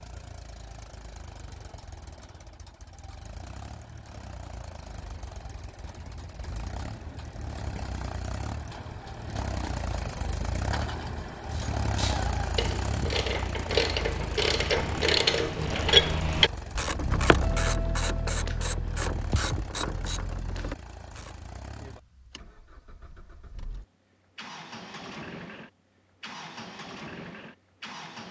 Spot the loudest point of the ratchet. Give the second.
16 s.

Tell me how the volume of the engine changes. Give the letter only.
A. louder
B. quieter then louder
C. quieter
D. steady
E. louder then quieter
E.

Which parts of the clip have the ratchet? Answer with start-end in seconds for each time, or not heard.
11.5-21.4.